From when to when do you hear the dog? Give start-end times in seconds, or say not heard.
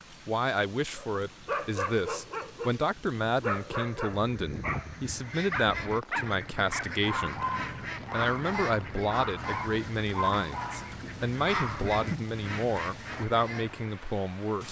0.9-12.2.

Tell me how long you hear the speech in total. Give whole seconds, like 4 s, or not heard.
14 s.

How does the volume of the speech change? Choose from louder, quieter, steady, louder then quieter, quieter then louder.
steady.